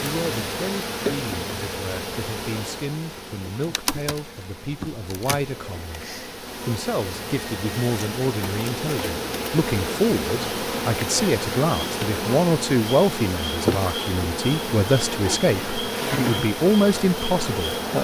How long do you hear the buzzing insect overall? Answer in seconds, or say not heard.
18 s.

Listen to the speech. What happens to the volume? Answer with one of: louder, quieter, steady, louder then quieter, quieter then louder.
louder.